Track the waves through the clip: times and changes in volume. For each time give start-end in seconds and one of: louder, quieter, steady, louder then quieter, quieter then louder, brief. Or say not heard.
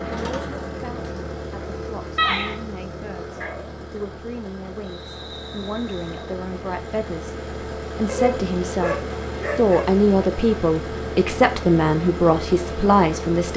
not heard.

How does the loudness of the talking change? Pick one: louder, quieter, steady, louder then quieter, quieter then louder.
louder.